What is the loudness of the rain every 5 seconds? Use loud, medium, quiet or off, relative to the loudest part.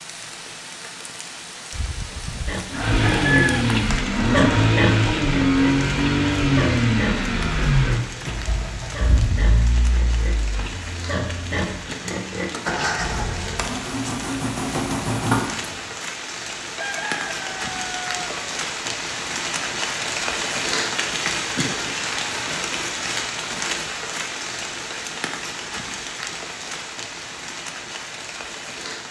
medium, medium, medium, loud, loud, medium.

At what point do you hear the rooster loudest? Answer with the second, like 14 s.
3 s.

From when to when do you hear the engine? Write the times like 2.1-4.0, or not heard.
2.7-15.9.